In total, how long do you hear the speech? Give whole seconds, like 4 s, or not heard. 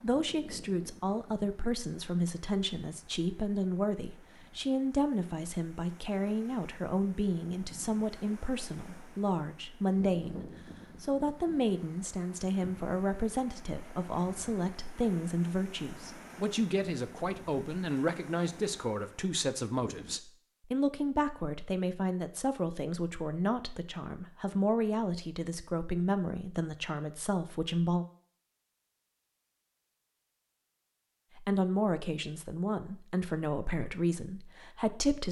32 s.